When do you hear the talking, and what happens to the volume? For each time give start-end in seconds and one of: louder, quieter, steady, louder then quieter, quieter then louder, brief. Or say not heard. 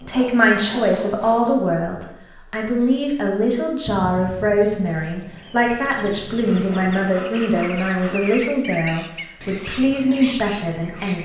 0.0-11.2 steady.